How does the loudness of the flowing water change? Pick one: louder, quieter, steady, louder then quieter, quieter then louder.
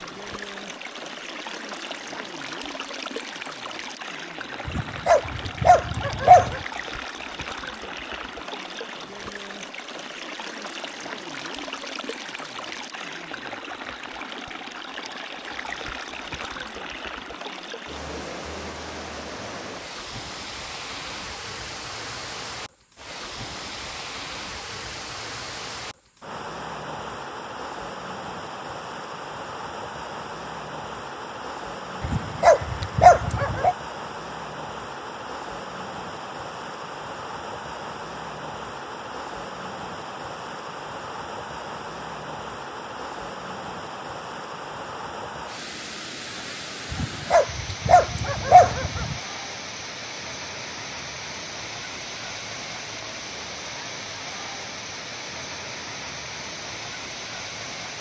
steady.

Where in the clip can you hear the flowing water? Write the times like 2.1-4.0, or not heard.
0.0-57.9.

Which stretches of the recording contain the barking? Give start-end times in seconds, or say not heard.
4.7-6.6, 32.0-33.8, 46.9-49.1.